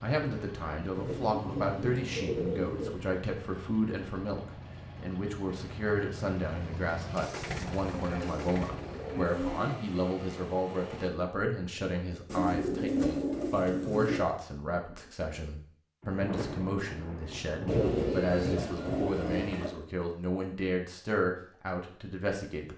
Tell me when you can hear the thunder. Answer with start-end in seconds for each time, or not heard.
16.0-19.4.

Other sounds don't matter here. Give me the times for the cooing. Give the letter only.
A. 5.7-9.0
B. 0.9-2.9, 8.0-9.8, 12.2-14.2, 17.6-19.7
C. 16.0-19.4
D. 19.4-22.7
B.